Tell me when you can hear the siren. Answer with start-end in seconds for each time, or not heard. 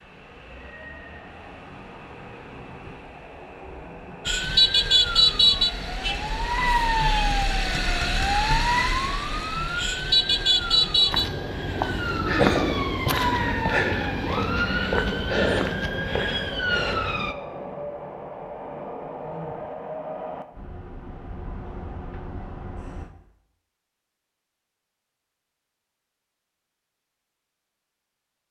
4.2-17.4.